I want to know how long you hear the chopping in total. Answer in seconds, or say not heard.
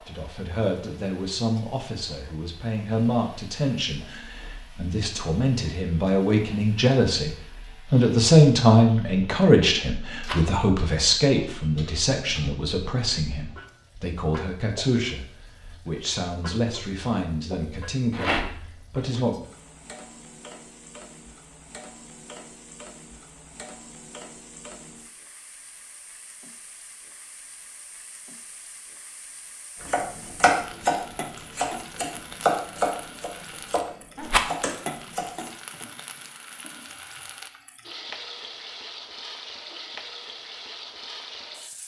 6 s.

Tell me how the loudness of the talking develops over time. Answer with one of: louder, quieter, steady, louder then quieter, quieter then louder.
louder then quieter.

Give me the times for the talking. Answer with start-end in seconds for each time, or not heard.
0.0-19.4.